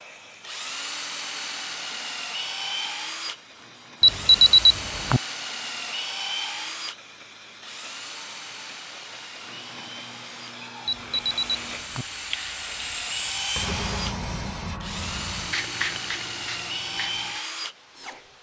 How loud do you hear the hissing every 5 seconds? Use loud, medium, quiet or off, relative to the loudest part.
quiet, medium, loud, loud.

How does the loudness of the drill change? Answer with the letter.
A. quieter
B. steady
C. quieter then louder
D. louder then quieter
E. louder
C.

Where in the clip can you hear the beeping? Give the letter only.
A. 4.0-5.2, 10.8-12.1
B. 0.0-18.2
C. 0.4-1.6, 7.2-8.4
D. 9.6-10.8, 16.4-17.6
A.